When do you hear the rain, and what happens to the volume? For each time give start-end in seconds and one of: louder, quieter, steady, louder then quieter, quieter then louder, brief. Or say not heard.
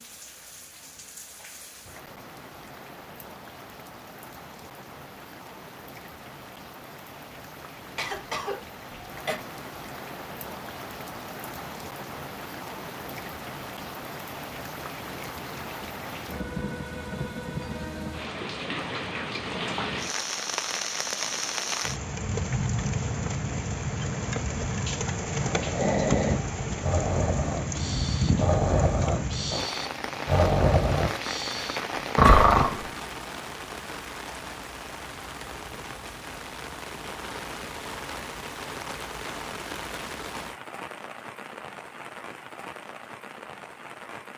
0.0-44.3 louder then quieter.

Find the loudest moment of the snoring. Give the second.
32 s.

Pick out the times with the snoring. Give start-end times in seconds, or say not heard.
25.4-32.9.